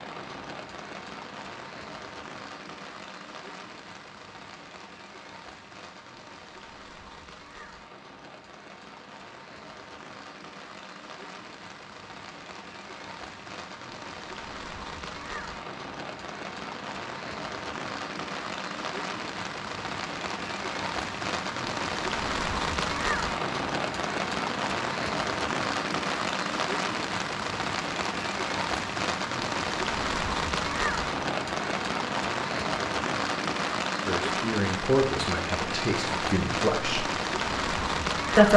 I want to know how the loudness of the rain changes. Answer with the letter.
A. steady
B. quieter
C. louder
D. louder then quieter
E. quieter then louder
C.